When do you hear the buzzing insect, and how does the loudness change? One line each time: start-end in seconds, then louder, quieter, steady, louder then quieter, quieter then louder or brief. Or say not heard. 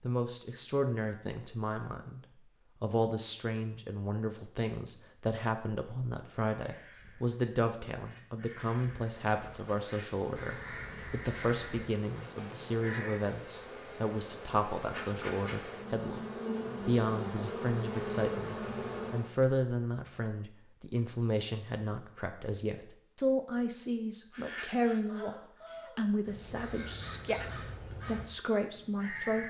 9.2-19.4 louder.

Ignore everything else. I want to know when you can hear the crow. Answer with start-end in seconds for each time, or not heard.
6.5-13.2, 24.3-29.4.